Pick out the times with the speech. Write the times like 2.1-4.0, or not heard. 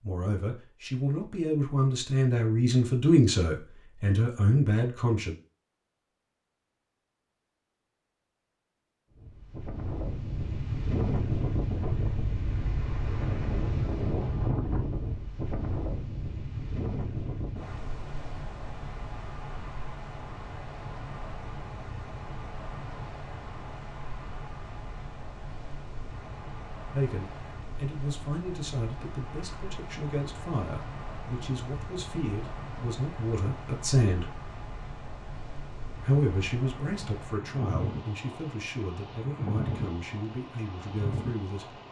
0.0-5.3, 26.9-34.3, 36.0-41.8.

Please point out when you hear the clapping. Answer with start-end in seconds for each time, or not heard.
not heard.